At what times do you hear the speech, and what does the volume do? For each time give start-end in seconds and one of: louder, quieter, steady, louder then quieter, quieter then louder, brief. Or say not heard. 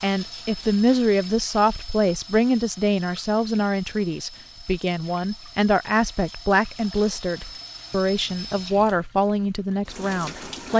0.0-10.7 steady.